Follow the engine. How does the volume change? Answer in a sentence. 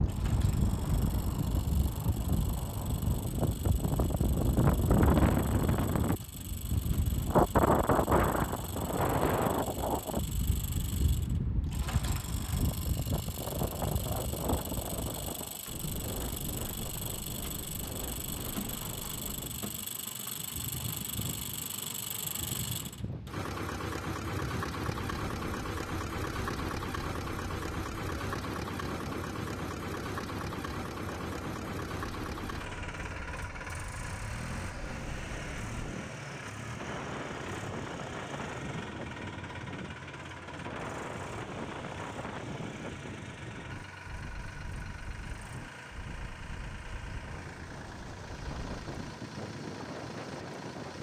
The volume of the engine goes up, then down.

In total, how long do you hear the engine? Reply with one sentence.
The engine can be heard for 51 seconds in total.